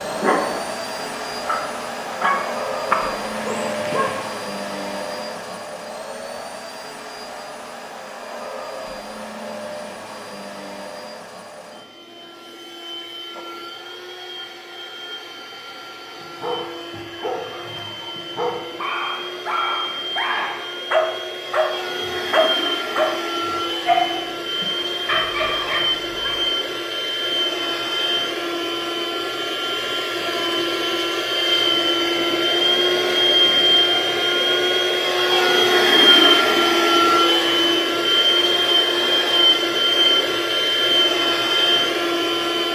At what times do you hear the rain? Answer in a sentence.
The rain can't be heard in this clip.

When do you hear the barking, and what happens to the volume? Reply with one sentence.
The barking can be heard from 0.0 to 4.2 s, getting louder then quieter; and from 16.2 to 26.4 s, getting louder then quieter.